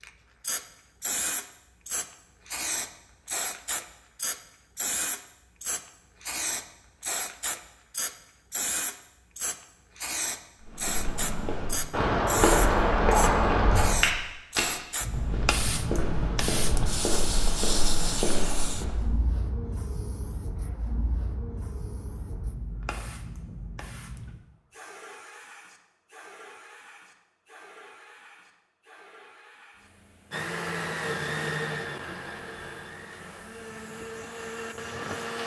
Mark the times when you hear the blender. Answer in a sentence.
The blender can be heard from 30.3 to 35.4 s.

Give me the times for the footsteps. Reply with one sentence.
The footsteps can be heard from 10.6 to 19.1 s.